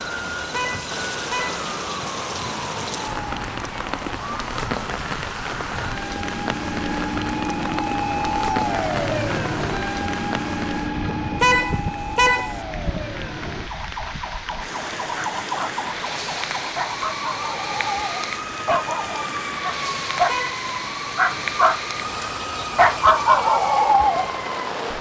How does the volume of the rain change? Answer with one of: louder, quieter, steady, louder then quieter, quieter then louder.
steady.